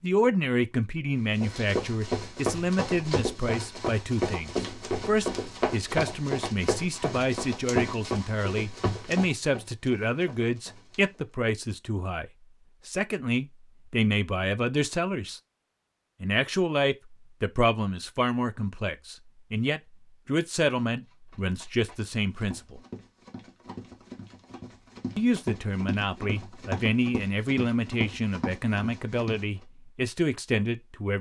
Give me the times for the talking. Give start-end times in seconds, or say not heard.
0.0-15.4, 16.2-22.8, 25.1-31.1.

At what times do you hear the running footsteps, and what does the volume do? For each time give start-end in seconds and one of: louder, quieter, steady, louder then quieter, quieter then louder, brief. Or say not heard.
1.4-11.2 quieter
21.1-29.4 louder.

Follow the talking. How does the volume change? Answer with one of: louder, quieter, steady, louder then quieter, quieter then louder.
steady.